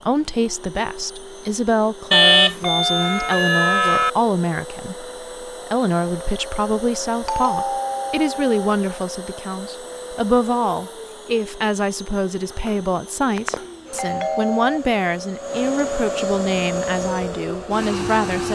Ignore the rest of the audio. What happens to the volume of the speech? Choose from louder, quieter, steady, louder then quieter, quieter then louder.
steady.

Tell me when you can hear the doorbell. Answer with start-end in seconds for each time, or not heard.
2.1-4.1, 7.2-8.7, 13.3-14.8.